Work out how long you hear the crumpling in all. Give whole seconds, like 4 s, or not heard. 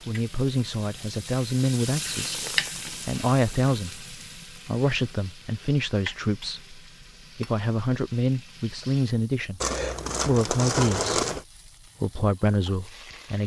4 s.